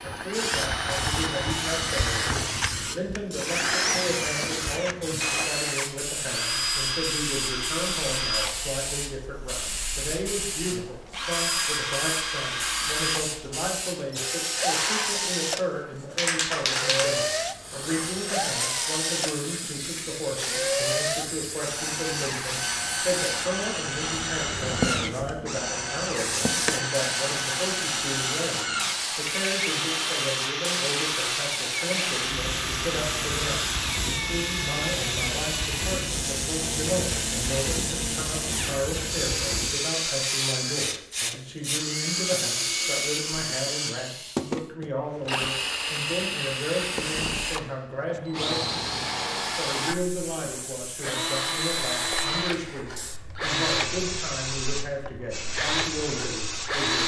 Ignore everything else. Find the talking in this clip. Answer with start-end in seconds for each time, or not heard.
0.0-57.0.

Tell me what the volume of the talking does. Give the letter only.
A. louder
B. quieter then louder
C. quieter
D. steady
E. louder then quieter
D.